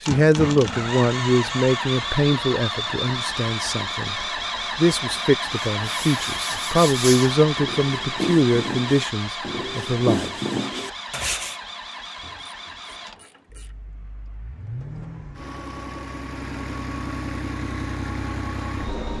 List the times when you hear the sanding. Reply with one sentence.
The sanding can be heard from 5.7 to 11.6 s.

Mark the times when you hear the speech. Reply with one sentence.
The speech can be heard from 0.0 to 10.3 s.